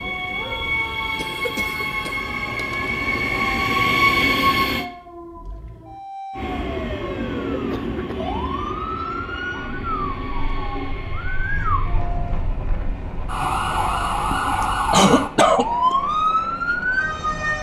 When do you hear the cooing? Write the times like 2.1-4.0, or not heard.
not heard.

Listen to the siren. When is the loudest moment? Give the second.
16 s.